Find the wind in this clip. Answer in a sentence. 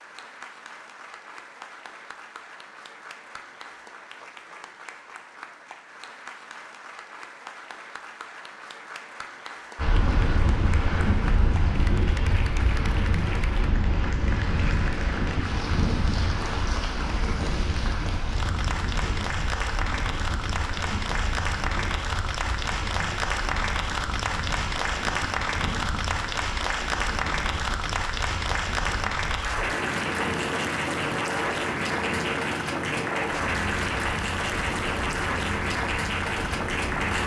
You can hear the wind from 9.8 to 37.2 s.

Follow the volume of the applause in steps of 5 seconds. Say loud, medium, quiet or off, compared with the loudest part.
quiet, quiet, medium, medium, loud, loud, loud, loud.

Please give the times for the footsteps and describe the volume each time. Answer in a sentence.
The footsteps can't be heard in this clip.